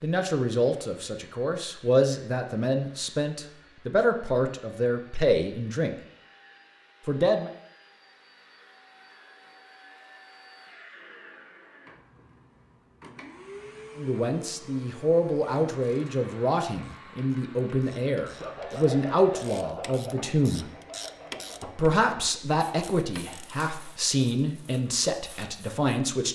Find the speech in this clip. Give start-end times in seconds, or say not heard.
0.0-6.0, 7.0-7.5, 13.9-20.7, 21.8-26.2.